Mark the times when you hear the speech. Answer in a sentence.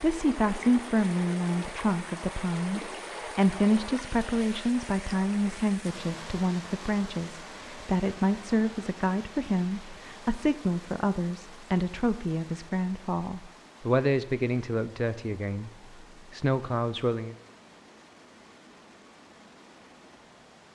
You can hear the speech from 0.0 to 15.7 s and from 16.3 to 17.4 s.